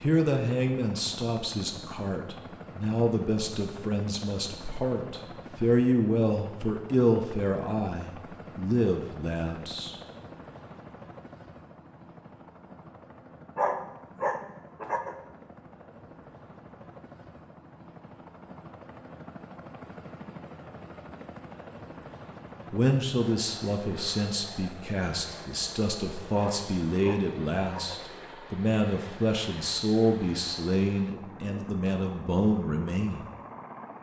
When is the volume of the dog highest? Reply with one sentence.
The loudest moment of the dog is at 14 seconds.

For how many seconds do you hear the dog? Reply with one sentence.
The dog can be heard for 3 seconds in total.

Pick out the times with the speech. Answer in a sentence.
You can hear the speech from 0.0 to 9.9 s and from 22.7 to 33.2 s.